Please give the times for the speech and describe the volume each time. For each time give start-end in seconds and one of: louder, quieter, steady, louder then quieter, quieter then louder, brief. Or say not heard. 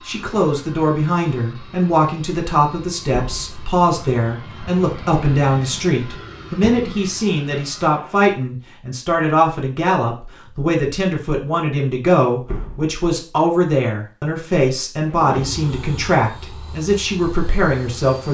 0.1-18.2 steady.